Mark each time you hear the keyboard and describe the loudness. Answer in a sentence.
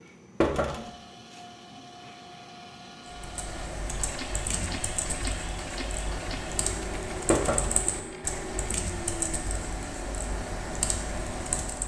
The keyboard can be heard from 3.0 to 11.8 s, at a steady volume.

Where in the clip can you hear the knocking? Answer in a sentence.
The knocking can be heard from 0.4 to 0.9 s and from 7.3 to 7.8 s.